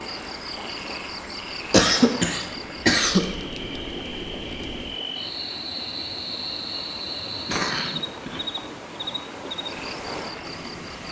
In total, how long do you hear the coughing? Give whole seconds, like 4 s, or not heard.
3 s.